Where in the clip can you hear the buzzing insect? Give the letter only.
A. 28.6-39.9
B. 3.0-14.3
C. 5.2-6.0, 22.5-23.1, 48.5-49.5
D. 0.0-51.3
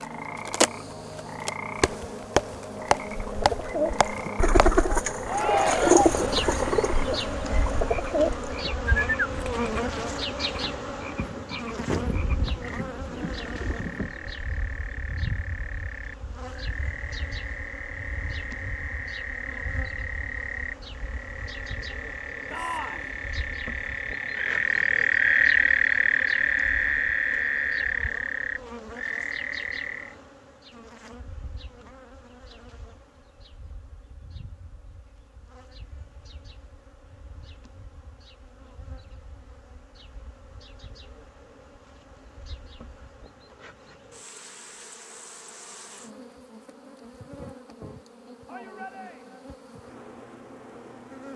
D.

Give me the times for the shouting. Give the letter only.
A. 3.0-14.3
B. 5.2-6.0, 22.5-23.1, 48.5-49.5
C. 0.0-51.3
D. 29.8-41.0
B.